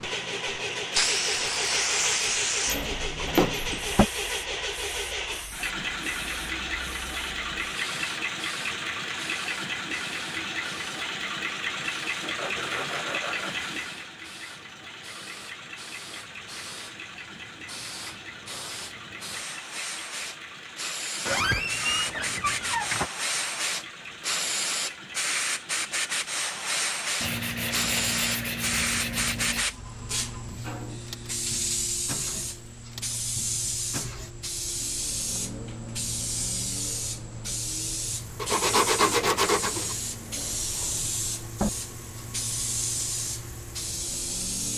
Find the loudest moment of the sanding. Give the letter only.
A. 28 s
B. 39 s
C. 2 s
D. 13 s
B.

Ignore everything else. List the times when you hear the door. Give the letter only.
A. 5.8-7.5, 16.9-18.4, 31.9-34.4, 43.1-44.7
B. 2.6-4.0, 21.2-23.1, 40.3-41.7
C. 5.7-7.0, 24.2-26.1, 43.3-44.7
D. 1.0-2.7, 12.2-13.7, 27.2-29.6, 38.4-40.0
B.